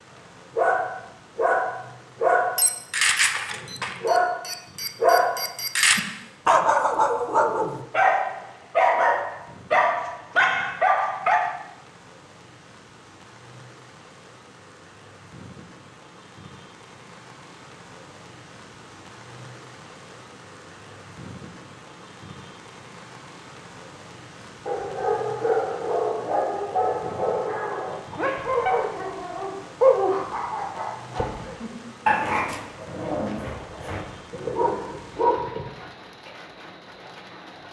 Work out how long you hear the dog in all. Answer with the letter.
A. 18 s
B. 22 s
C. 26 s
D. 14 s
B.